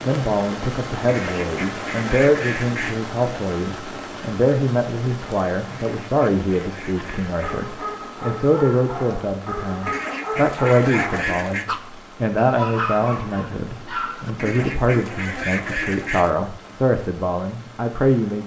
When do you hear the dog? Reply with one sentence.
You can hear the dog from 6.9 to 14.3 s.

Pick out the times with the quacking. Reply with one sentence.
The quacking can be heard from 1.1 to 3.0 s, from 5.7 to 7.7 s, from 9.8 to 11.7 s and from 14.3 to 16.3 s.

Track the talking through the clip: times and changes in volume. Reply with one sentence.
You can hear the talking from 0.0 to 18.4 s, at a steady volume.